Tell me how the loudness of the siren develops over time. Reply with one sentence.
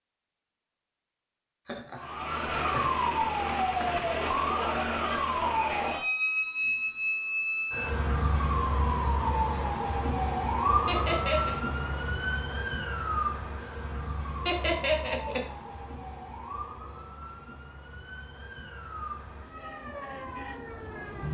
The loudness of the siren goes down.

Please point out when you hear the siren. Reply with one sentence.
You can hear the siren from 1.9 to 21.2 s.